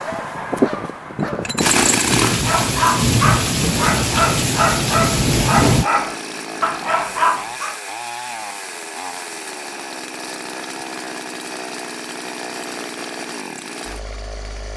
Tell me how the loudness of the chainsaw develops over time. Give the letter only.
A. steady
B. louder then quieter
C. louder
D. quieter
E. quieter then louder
D.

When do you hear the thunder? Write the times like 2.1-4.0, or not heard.
1.6-5.9.